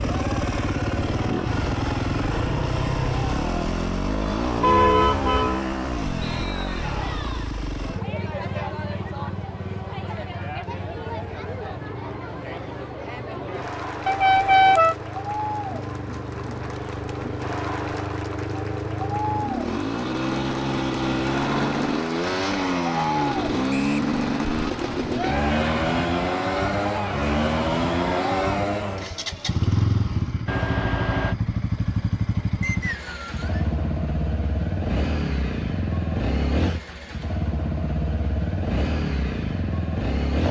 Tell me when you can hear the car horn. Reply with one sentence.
You can hear the car horn from 4.6 to 5.7 s, from 14.1 to 14.9 s and from 30.4 to 31.4 s.